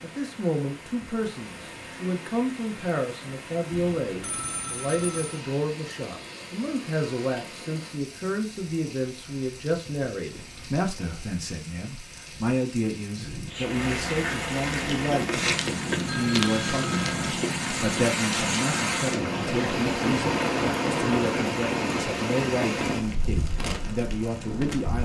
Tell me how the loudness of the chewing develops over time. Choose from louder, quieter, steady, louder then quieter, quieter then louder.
quieter.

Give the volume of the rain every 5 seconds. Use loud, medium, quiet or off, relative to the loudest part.
quiet, quiet, medium, loud, loud.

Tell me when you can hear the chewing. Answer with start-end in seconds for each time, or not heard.
14.8-19.8.